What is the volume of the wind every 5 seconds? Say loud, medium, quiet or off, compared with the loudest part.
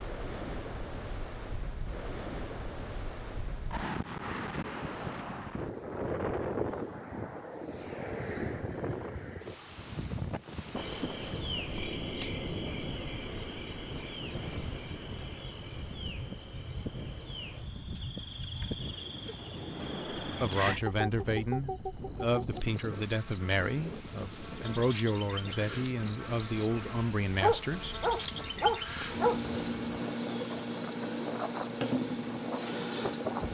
loud, loud, medium, medium, medium, medium, loud.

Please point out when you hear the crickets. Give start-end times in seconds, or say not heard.
10.8-33.4.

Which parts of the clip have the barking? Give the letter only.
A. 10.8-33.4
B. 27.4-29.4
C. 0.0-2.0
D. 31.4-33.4
B.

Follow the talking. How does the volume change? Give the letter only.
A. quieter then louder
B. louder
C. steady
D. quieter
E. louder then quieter
C.